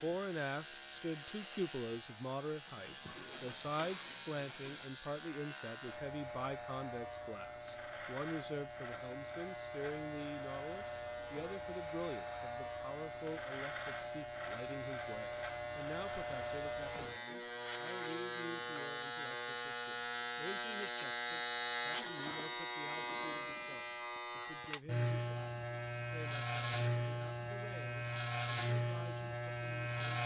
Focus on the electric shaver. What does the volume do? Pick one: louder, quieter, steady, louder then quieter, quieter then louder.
louder.